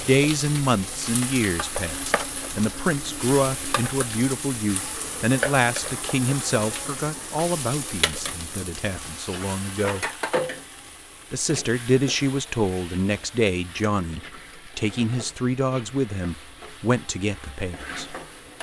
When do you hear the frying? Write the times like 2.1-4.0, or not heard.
0.0-18.5.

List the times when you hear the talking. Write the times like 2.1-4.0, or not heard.
0.0-10.1, 11.3-18.1.